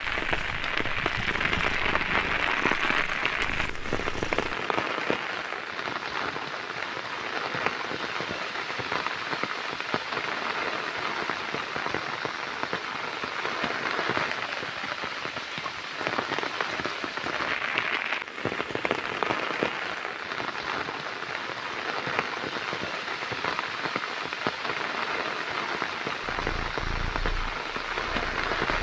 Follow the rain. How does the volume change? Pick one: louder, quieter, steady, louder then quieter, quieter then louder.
steady.